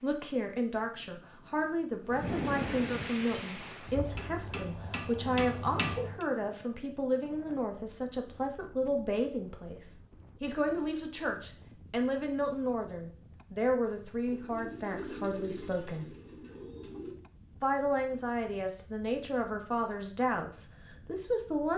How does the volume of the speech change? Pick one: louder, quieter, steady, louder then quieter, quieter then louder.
steady.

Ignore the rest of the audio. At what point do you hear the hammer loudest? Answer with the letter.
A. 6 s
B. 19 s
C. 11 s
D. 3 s
A.